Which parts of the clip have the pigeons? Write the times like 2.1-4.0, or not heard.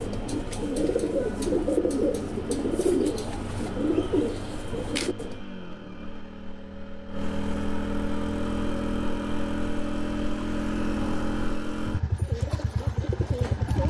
0.0-5.4, 12.1-13.8.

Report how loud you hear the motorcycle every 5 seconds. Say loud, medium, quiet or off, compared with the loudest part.
medium, loud, loud.